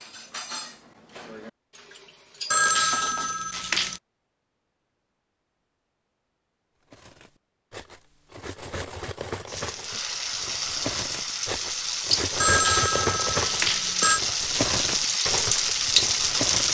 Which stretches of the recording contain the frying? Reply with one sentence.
The frying can be heard from 9.4 to 16.7 s.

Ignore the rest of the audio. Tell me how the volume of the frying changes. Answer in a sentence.
The volume of the frying goes up.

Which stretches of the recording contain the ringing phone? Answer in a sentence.
You can hear the ringing phone from 2.5 to 4.0 s and from 12.4 to 14.2 s.